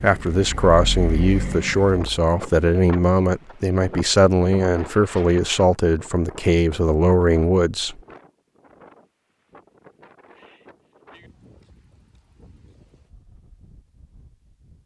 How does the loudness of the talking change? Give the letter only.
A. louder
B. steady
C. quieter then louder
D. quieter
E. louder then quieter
B.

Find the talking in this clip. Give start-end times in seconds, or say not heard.
0.0-8.0.